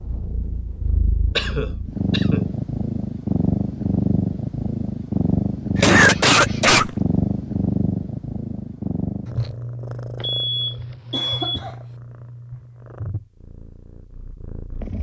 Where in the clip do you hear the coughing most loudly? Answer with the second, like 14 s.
6 s.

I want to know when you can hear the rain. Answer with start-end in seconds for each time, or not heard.
not heard.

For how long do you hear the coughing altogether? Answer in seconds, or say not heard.
3 s.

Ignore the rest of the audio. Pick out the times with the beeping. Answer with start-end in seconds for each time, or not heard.
10.2-11.7.